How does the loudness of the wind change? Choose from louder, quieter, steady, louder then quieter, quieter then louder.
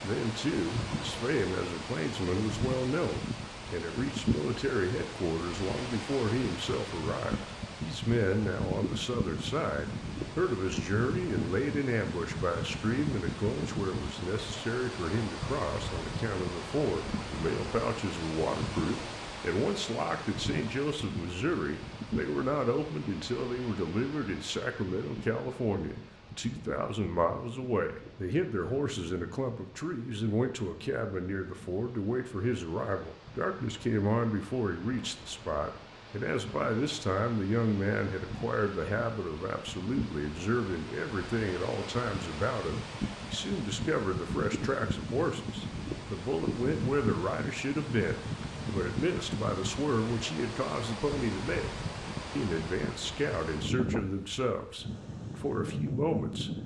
quieter then louder.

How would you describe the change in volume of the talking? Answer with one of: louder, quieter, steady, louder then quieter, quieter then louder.
steady.